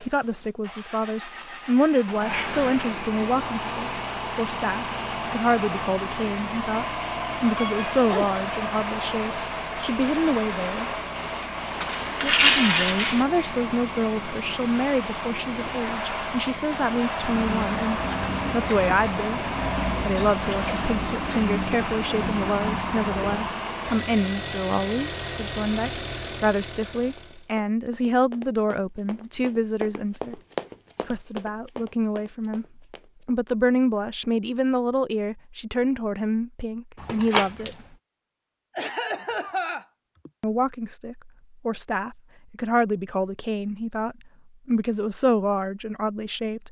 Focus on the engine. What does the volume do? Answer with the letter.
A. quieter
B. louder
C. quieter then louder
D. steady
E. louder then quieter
D.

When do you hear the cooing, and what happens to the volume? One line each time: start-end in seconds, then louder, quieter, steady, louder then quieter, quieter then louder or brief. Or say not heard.
17.1-23.6 steady.